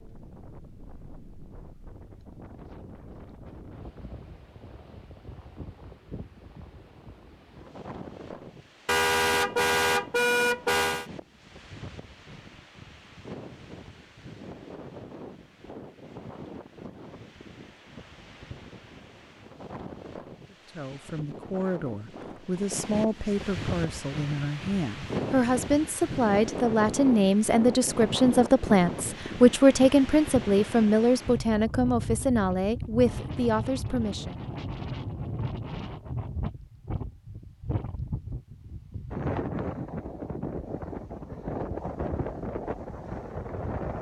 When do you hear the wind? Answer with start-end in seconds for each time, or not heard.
0.0-43.9.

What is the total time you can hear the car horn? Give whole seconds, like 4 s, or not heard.
2 s.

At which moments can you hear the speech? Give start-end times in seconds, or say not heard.
20.5-34.4.